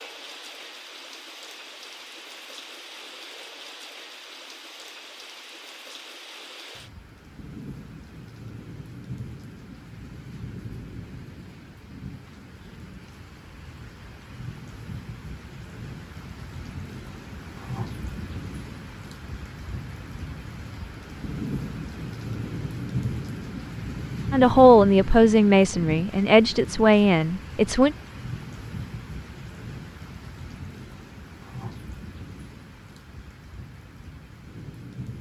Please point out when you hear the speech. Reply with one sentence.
You can hear the speech from 24.3 to 27.9 s.